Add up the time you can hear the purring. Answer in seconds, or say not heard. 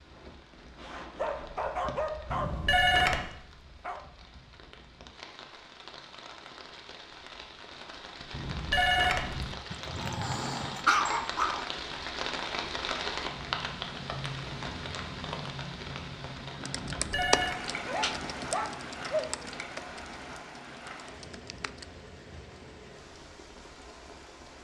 not heard.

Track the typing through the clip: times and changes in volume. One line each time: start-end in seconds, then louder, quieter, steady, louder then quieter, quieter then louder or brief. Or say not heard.
16.6-21.9 quieter.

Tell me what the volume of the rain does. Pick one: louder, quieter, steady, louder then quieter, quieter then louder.
louder then quieter.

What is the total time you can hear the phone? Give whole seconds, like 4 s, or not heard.
3 s.